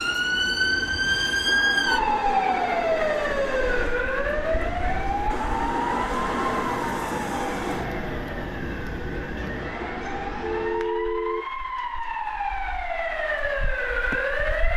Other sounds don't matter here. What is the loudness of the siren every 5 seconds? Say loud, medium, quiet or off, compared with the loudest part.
loud, medium, medium.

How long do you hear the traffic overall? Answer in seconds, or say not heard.
11 s.